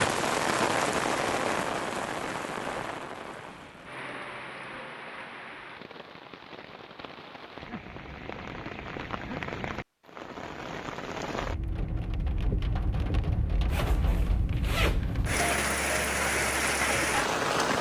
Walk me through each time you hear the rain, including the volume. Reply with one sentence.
The rain can be heard from 0.0 to 17.7 s, getting quieter then louder.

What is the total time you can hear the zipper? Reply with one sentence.
The zipper can be heard for 2 seconds in total.